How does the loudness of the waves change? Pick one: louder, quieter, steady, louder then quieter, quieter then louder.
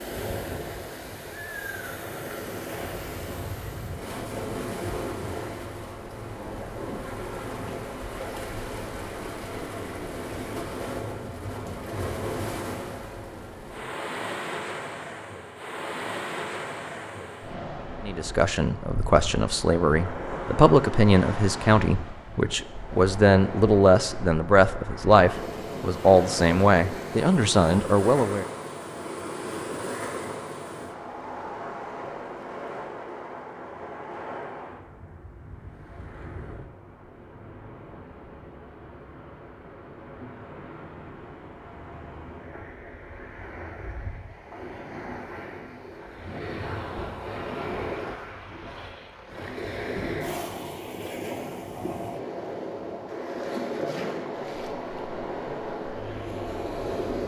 quieter then louder.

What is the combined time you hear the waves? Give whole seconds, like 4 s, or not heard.
57 s.